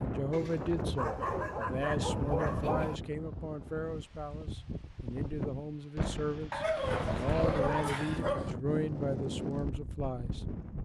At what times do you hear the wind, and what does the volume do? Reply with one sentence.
The wind can be heard from 0.0 to 10.8 s, at a steady volume.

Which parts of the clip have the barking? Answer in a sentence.
You can hear the barking from 0.9 to 3.0 s and from 6.5 to 8.6 s.